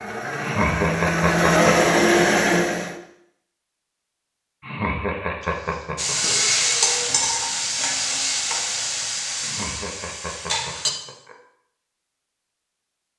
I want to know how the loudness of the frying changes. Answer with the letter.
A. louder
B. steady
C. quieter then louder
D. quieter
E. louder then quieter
D.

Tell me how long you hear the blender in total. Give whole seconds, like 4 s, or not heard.
3 s.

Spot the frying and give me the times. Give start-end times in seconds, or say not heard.
6.0-10.9.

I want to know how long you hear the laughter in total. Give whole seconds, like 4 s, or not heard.
5 s.